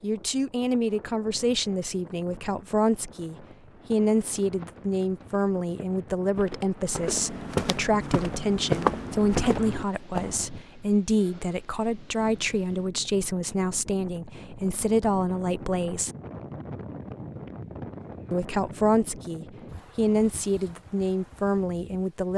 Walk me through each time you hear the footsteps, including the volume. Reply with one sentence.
The footsteps can be heard from 3.7 to 10.4 s, getting louder.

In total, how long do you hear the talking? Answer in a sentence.
You can hear the talking for 20 seconds altogether.